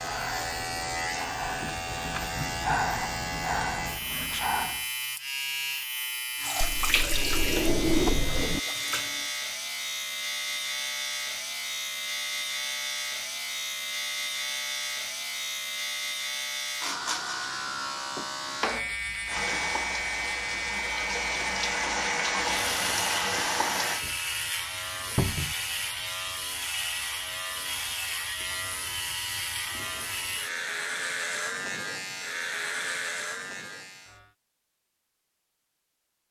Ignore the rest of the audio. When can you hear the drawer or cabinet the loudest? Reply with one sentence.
The loudest moment of the drawer or cabinet is at 8 seconds.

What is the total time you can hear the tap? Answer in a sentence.
The tap can be heard for 8 seconds in total.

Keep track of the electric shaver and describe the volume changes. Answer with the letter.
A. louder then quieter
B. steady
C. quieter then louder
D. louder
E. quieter
B.